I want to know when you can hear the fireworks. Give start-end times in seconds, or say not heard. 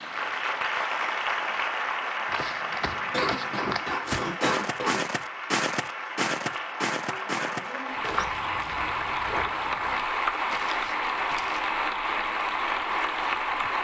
not heard.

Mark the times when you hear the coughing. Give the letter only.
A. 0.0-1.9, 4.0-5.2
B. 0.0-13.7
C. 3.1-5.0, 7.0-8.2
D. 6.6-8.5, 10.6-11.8
C.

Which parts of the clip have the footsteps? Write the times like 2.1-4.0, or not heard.
2.2-11.8.